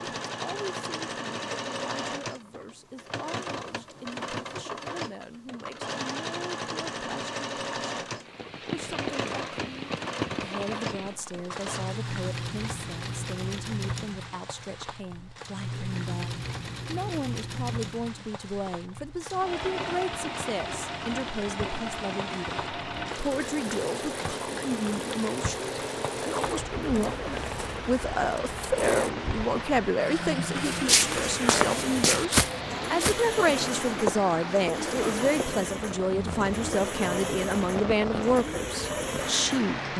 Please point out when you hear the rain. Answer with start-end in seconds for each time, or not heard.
8.2-39.9.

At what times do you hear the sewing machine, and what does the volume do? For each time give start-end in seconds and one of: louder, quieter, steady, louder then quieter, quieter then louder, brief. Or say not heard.
0.0-39.6 steady.